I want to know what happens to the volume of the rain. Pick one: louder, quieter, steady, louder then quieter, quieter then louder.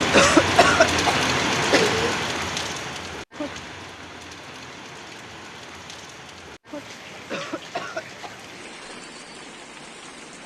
quieter.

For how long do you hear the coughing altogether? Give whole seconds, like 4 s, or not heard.
4 s.